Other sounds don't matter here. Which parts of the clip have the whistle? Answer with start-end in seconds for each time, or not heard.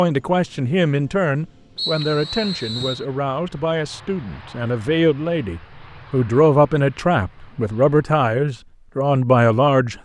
1.8-3.0.